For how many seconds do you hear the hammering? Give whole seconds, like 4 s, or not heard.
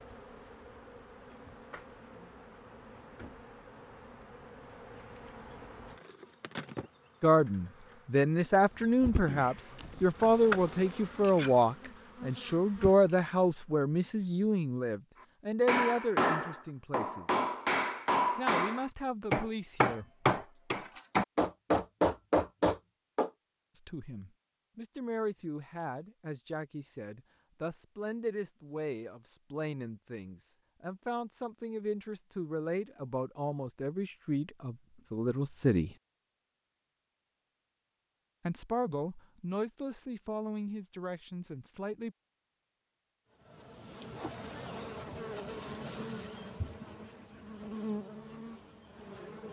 8 s.